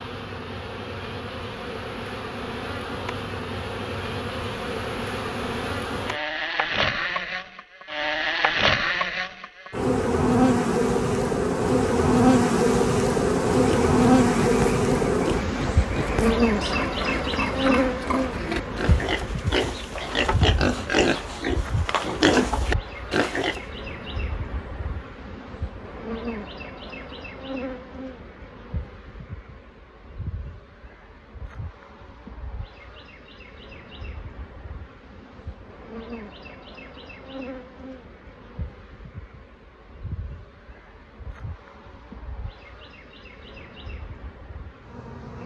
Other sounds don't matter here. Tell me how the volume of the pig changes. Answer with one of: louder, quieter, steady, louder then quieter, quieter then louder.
louder.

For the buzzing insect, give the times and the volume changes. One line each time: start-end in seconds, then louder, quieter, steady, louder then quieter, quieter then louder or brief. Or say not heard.
0.0-45.4 louder then quieter.